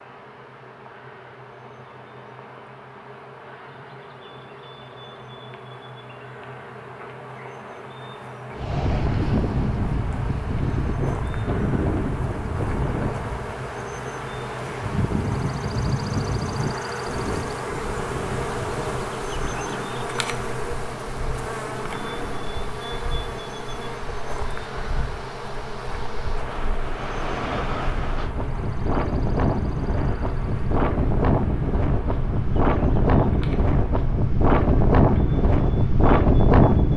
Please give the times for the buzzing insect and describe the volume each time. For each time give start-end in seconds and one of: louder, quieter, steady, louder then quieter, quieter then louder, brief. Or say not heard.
0.0-36.9 louder then quieter.